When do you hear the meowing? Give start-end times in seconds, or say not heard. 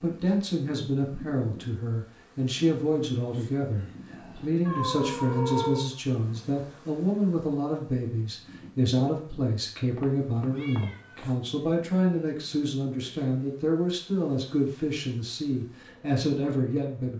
4.7-5.9, 9.9-11.2.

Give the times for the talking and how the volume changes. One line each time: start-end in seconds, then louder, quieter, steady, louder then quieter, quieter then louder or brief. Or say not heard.
0.0-17.1 steady.